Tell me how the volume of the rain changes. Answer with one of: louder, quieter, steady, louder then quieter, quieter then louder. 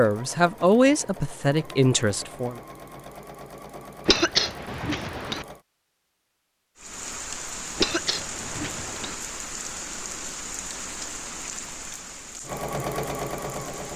quieter.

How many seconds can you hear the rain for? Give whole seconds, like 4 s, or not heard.
7 s.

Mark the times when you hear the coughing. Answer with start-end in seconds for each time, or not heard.
4.0-5.5, 7.8-9.2.